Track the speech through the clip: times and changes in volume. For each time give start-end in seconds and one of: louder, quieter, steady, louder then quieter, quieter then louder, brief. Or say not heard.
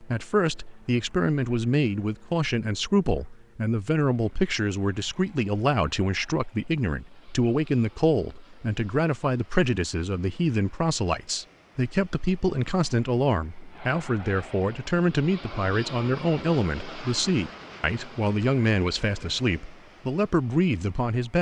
0.0-21.3 steady.